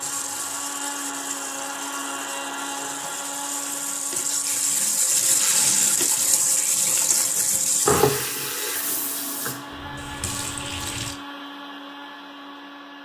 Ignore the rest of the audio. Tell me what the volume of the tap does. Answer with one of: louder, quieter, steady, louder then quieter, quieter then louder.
louder then quieter.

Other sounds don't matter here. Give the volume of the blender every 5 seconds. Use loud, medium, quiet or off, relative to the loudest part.
loud, medium, loud.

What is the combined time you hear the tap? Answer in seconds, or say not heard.
11 s.